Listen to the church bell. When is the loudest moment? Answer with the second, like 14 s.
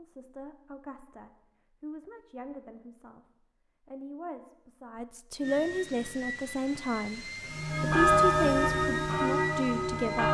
8 s.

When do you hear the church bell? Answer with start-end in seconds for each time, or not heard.
7.5-10.2.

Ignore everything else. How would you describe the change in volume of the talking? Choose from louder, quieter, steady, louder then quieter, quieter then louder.
louder.